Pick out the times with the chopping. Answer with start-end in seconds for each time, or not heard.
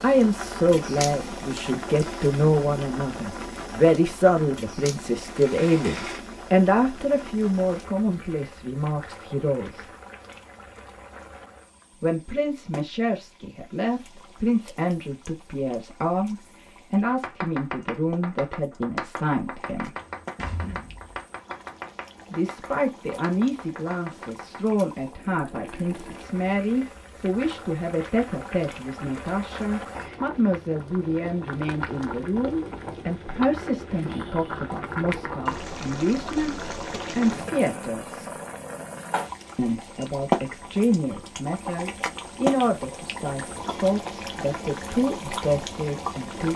17.1-24.8.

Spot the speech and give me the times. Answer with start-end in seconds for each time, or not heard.
0.0-9.9, 12.0-19.9, 22.3-38.3, 39.5-46.5.